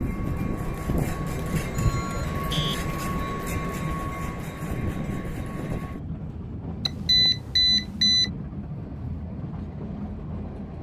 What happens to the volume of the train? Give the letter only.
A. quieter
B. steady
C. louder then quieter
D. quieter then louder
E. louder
A.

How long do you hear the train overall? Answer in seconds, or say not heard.
11 s.